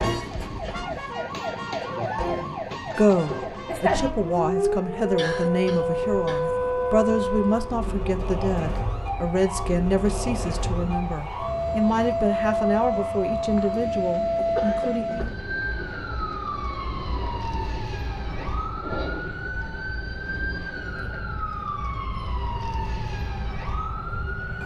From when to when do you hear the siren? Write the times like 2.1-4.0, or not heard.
0.0-24.6.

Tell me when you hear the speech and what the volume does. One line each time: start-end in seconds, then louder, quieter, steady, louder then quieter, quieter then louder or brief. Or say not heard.
2.2-15.3 steady.